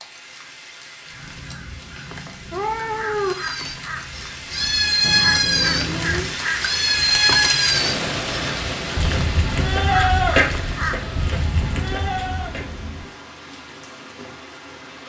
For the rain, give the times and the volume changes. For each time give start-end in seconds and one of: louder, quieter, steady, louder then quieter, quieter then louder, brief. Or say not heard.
0.0-15.0 louder then quieter.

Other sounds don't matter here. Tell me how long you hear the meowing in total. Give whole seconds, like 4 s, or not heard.
4 s.